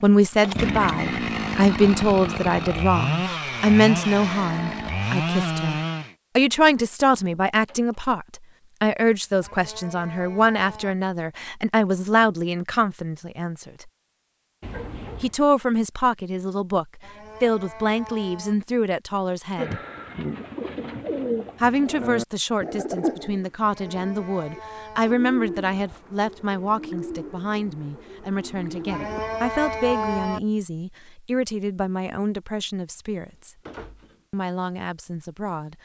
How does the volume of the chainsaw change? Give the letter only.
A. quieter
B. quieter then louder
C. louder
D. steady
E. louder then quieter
D.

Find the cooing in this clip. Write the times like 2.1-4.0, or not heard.
19.6-29.4.